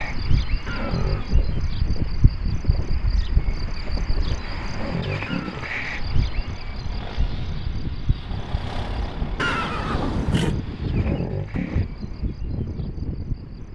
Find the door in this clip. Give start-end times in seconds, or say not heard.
not heard.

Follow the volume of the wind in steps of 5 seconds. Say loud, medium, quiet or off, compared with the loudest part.
medium, medium, loud.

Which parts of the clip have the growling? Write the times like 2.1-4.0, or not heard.
0.6-1.4, 4.7-5.7, 10.9-11.8.